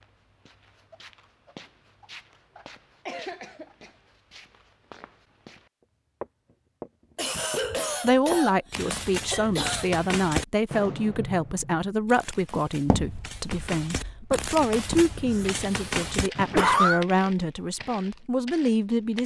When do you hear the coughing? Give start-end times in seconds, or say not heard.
3.0-3.9, 7.2-9.9, 15.2-17.1.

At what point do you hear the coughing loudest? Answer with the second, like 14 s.
17 s.